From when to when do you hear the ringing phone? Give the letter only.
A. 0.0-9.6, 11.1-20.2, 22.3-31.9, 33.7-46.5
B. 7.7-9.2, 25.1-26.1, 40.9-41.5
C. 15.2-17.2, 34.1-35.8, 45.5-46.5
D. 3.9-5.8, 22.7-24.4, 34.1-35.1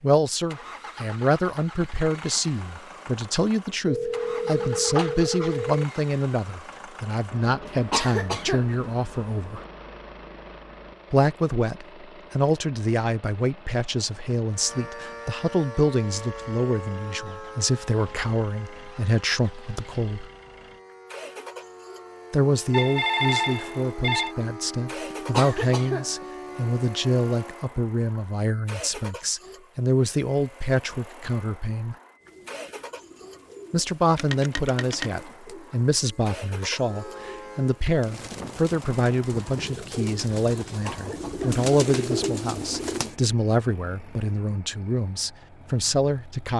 D.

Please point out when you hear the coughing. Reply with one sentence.
The coughing can be heard from 7.7 to 9.2 s, from 25.1 to 26.1 s and from 40.9 to 41.5 s.